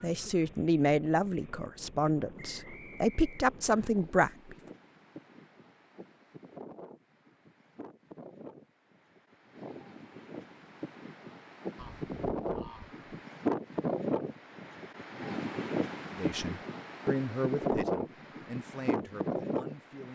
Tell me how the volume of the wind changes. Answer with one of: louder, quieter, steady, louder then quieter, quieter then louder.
louder.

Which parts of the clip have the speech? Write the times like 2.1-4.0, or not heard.
0.0-4.5, 16.1-20.1.